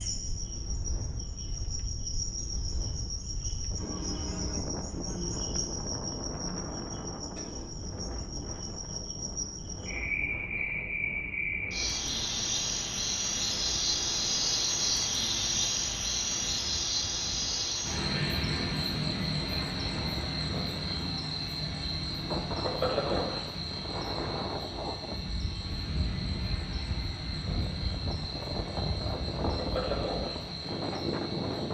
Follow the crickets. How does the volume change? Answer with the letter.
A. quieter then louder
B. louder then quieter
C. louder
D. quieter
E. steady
B.